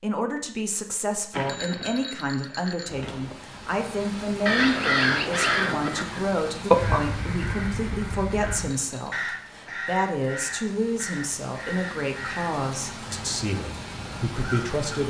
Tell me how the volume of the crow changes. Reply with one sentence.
The loudness of the crow goes down.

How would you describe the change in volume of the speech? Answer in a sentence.
The volume of the speech stays about the same.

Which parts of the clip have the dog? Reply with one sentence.
The dog can't be heard in this clip.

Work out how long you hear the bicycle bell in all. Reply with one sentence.
The bicycle bell can be heard for 3 seconds in total.